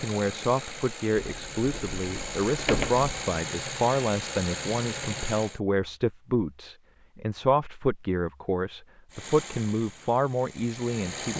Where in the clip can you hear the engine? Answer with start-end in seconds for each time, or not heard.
0.0-5.6, 9.1-11.3.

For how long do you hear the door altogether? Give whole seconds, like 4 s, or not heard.
2 s.